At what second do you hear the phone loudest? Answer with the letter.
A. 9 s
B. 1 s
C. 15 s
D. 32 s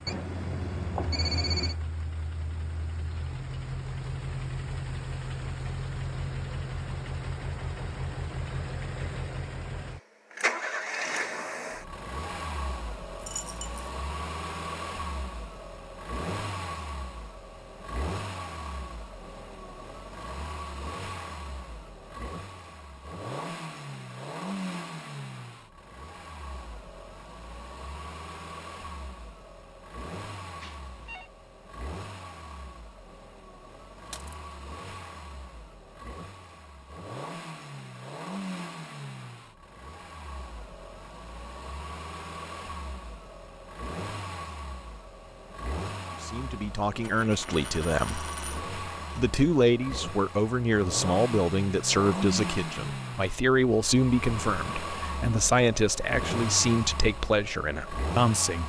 B.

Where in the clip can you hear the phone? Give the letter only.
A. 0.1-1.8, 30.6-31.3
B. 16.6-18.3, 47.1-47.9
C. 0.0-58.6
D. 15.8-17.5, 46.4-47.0
A.